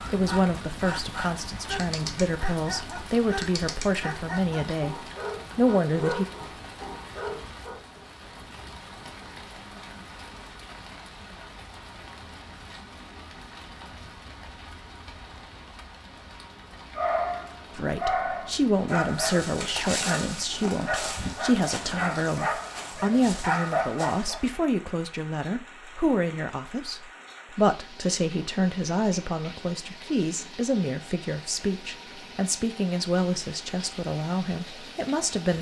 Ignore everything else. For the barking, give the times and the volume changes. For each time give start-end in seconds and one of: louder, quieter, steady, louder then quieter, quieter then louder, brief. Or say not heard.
0.0-8.1 steady
16.9-24.4 steady.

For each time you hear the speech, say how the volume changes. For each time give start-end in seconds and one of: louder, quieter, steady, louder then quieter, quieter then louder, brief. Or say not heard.
0.1-6.2 louder
17.8-35.5 steady.